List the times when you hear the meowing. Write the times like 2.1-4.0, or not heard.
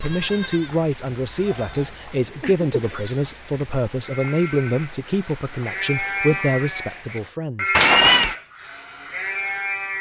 1.7-3.0, 7.7-8.3.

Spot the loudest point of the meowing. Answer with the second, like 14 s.
8 s.